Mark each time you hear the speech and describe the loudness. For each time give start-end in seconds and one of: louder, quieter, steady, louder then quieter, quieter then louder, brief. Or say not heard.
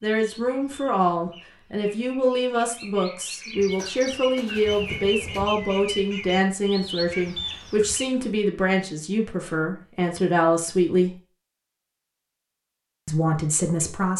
0.0-11.2 steady
13.1-14.1 brief.